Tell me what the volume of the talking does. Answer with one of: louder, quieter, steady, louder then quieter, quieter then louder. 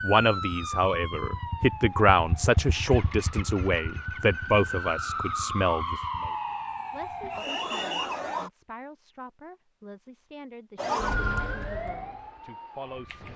quieter.